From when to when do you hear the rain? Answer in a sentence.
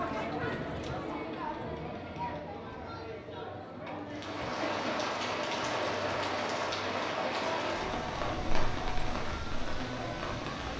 You can hear the rain from 4.0 to 10.7 s.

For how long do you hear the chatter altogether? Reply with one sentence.
You can hear the chatter for 11 seconds altogether.